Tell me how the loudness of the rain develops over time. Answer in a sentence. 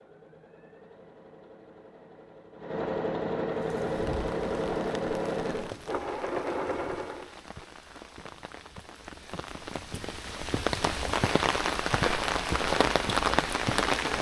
The loudness of the rain goes up.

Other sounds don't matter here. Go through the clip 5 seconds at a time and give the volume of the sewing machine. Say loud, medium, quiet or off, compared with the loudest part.
loud, loud, off.